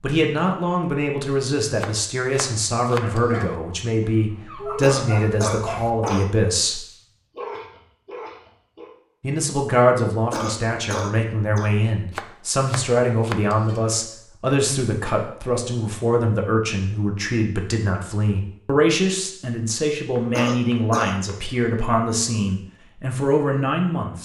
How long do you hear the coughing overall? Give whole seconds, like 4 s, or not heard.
4 s.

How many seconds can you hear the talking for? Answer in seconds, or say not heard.
22 s.